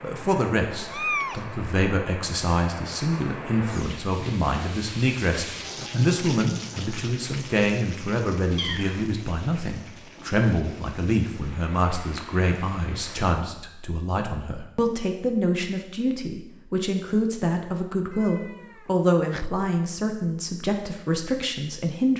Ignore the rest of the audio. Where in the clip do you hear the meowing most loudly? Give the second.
1 s.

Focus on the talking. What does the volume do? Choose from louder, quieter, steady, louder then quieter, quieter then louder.
steady.